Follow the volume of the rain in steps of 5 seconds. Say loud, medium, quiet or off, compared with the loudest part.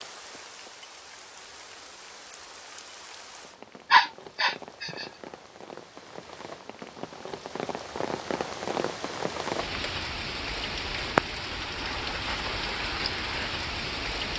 quiet, medium, loud.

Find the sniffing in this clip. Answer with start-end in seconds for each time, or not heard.
3.9-5.0.